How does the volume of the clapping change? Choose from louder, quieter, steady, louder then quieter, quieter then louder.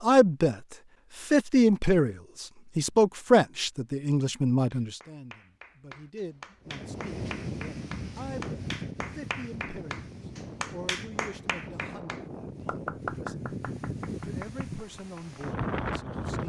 louder.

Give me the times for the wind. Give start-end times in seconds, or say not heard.
6.7-16.4.